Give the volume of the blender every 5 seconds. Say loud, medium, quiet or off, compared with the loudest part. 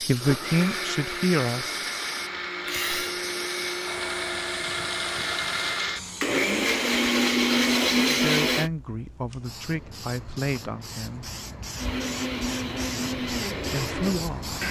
medium, loud, medium.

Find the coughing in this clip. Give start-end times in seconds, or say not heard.
2.6-3.2.